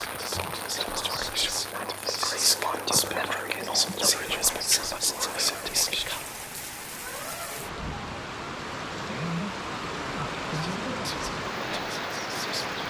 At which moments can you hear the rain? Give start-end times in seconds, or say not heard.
0.0-12.8.